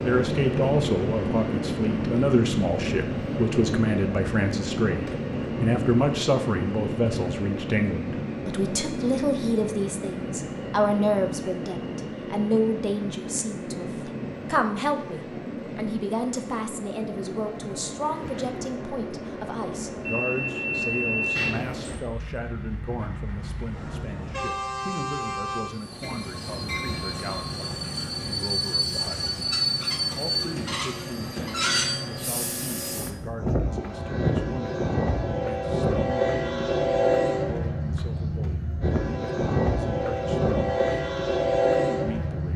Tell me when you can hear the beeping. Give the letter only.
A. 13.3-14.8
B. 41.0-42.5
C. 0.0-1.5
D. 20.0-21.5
D.